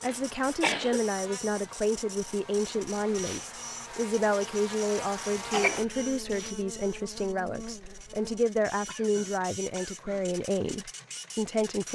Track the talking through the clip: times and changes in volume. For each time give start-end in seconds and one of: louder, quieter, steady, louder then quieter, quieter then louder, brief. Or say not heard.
0.0-11.9 steady.